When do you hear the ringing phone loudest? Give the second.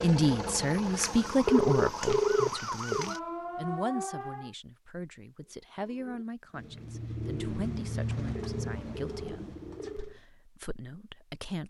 2 s.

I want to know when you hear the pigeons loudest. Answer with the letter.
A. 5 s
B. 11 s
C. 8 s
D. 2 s
C.